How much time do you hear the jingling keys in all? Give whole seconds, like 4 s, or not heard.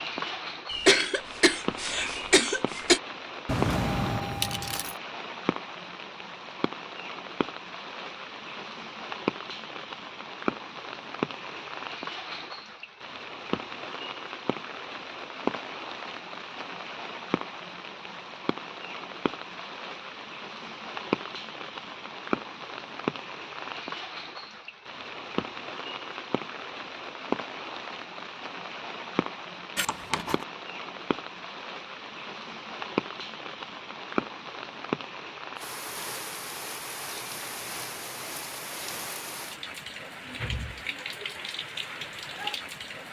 2 s.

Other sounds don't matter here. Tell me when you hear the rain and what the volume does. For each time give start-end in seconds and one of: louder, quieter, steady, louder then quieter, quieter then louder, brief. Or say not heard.
0.0-43.0 steady.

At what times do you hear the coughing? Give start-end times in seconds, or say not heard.
0.7-3.0.